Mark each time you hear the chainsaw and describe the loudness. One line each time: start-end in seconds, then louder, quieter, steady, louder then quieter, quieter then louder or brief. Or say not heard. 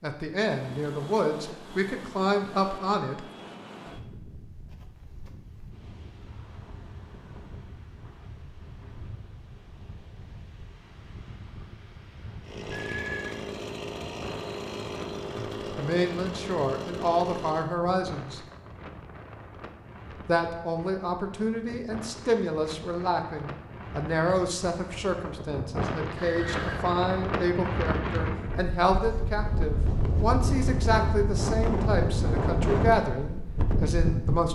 12.4-17.8 steady.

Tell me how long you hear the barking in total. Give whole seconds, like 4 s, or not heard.
not heard.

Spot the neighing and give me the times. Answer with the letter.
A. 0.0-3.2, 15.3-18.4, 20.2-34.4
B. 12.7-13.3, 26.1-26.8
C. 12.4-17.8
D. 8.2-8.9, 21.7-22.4
B.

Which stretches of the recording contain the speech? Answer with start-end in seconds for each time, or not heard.
0.0-3.2, 15.3-18.4, 20.2-34.4.